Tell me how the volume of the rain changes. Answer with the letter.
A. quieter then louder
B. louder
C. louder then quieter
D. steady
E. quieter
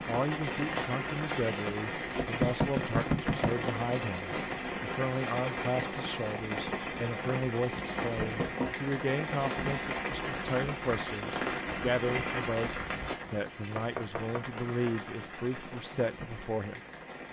E.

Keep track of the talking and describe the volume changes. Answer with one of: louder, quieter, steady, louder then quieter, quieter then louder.
steady.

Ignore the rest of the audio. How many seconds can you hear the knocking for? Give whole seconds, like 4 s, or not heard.
3 s.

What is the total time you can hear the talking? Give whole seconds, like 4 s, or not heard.
17 s.